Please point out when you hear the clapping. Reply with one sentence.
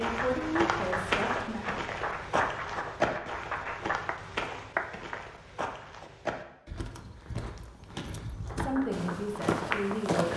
You can hear the clapping from 0.0 to 5.2 s and from 8.5 to 10.2 s.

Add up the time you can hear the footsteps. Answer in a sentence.
You can hear the footsteps for 10 seconds altogether.